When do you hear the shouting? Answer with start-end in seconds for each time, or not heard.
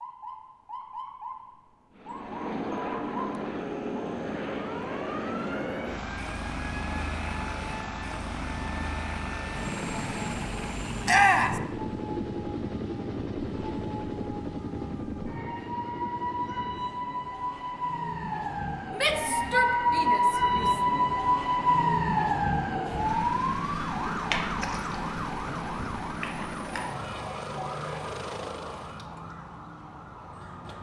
11.1-11.6, 18.9-20.8.